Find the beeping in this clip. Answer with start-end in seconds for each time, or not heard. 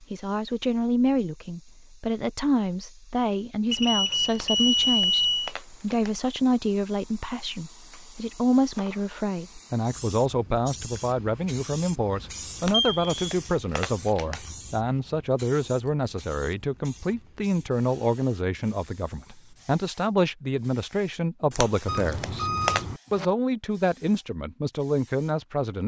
3.7-5.5, 12.7-13.3, 21.9-23.2.